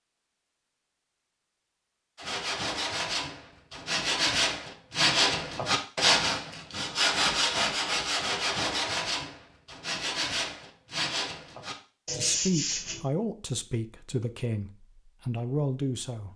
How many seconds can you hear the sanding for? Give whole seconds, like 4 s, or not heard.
11 s.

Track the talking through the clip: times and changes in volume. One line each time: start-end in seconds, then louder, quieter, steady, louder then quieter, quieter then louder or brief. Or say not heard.
12.1-16.3 quieter then louder.